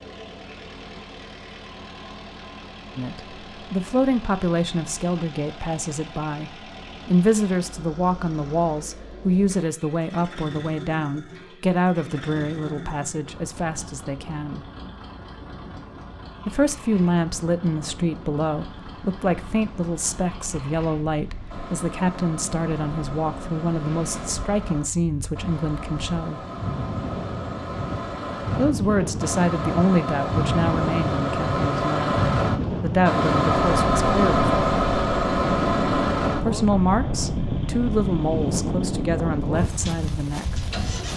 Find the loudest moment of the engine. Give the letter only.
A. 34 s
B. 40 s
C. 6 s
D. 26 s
A.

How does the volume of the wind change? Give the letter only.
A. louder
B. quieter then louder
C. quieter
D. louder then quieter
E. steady
A.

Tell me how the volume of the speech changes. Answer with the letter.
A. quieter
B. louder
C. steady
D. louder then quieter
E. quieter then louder
C.